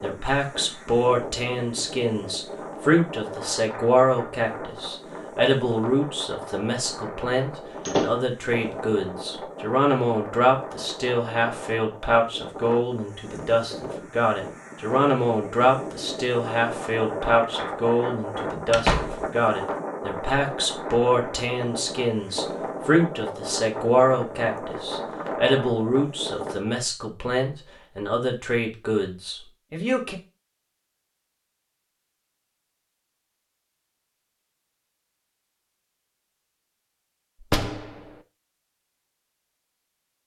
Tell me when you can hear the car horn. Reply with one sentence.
The car horn can't be heard in this clip.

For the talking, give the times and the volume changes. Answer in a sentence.
The talking can be heard from 0.0 to 30.1 s, at a steady volume.